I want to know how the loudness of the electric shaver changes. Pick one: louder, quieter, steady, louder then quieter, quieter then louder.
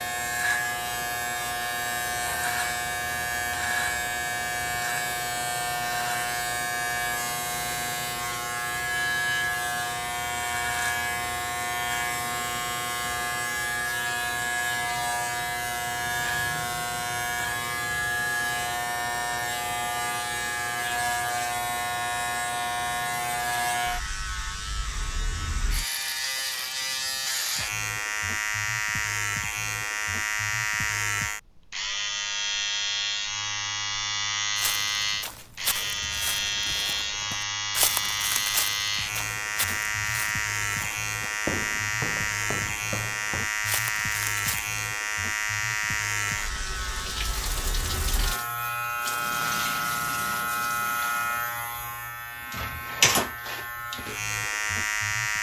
steady.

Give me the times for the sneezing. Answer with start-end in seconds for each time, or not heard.
not heard.